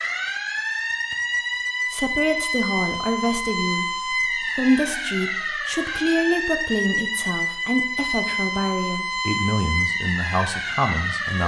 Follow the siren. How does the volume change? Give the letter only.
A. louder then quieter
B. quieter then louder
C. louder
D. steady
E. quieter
D.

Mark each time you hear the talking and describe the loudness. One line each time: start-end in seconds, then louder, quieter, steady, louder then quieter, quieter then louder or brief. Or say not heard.
1.9-11.4 steady.